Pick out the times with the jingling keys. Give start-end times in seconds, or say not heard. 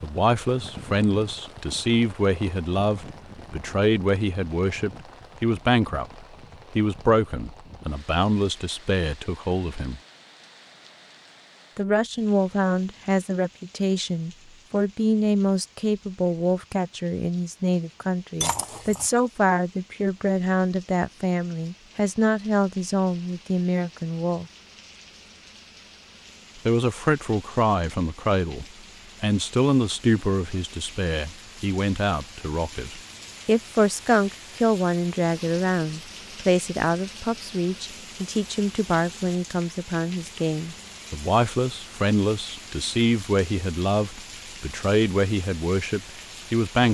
18.4-19.1.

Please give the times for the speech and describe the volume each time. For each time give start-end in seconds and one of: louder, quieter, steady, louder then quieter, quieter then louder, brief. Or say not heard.
0.0-10.0 steady
11.8-24.4 steady
26.6-46.8 steady.